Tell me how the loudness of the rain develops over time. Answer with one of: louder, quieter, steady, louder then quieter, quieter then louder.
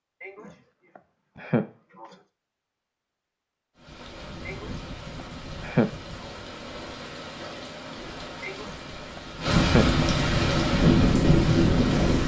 louder.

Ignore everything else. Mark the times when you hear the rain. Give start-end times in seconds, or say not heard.
3.8-12.2.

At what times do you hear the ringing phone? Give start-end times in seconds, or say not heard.
not heard.